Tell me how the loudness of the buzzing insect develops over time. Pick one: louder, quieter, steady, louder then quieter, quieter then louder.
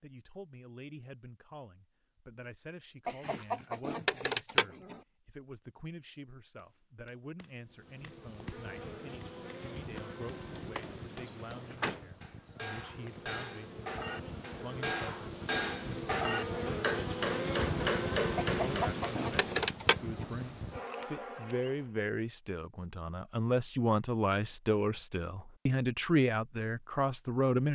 louder.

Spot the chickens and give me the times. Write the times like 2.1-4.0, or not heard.
3.0-5.0, 18.4-20.3.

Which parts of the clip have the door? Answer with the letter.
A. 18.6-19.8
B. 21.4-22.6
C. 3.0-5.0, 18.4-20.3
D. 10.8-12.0
D.